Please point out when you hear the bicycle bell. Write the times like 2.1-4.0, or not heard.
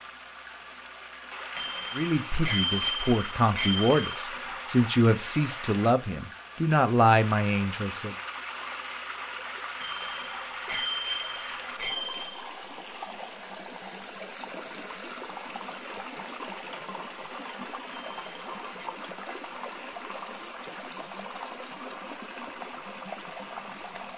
1.6-4.2, 9.8-12.4, 17.9-18.9.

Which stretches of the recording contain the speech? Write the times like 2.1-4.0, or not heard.
1.9-8.2.